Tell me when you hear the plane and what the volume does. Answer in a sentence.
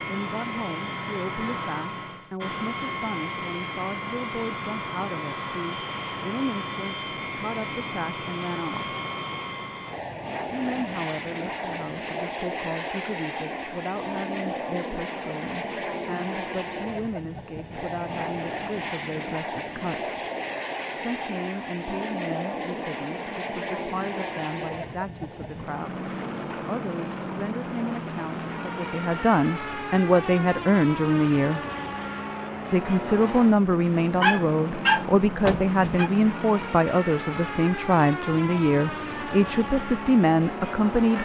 The plane can be heard from 0.0 to 41.2 s, at a steady volume.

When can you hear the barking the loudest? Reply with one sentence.
The loudest moment of the barking is at 35 seconds.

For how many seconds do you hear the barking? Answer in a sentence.
The barking can be heard for 2 seconds in total.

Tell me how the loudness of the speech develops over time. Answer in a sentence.
The volume of the speech goes up.